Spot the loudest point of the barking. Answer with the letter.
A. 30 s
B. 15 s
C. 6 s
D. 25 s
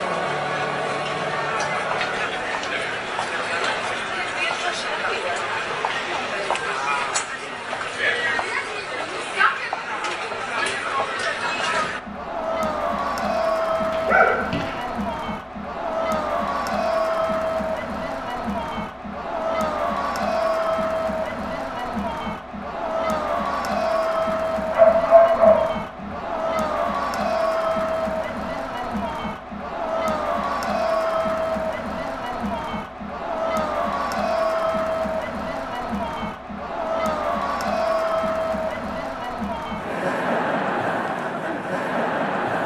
D.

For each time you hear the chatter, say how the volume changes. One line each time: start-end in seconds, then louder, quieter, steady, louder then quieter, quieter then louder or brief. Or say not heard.
0.0-42.6 steady.